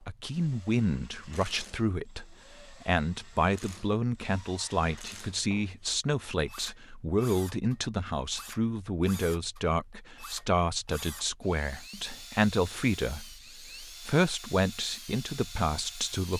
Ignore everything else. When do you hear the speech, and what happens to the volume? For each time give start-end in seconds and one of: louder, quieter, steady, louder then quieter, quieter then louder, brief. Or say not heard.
0.1-16.3 steady.